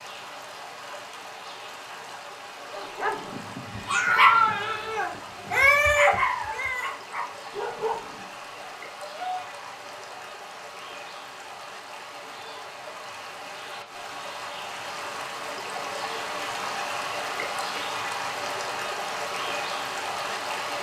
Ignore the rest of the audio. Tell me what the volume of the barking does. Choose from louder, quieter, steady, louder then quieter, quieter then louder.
quieter.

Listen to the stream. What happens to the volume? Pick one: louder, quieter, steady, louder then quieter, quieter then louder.
louder.